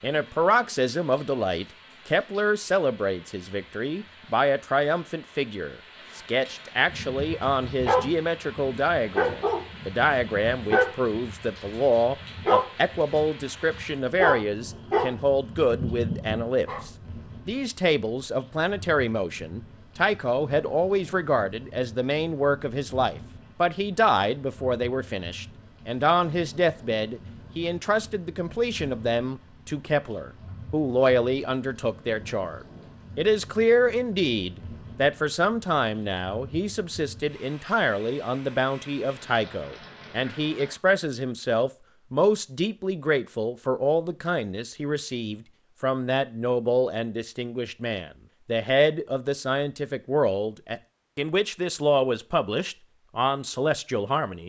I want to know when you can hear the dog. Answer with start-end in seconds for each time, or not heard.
6.8-16.8.